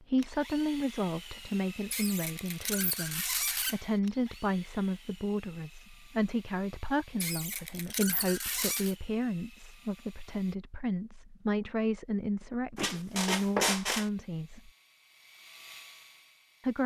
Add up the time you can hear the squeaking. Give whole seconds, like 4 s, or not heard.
5 s.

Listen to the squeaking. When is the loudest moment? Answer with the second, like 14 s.
14 s.